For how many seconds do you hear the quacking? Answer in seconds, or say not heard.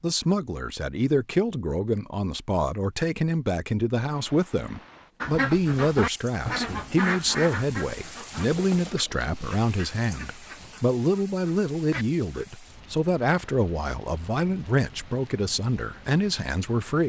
7 s.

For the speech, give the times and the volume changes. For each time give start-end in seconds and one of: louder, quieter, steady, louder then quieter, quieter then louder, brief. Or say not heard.
0.0-17.0 steady.